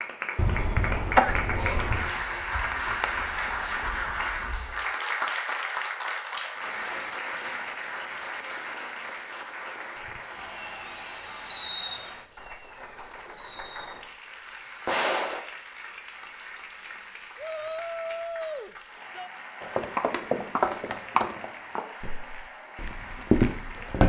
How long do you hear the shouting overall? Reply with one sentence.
The shouting can be heard for 2 seconds in total.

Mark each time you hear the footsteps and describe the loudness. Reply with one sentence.
You can hear the footsteps from 19.6 to 24.0 s, getting quieter then louder.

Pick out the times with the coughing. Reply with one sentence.
The coughing can be heard from 0.3 to 2.1 s.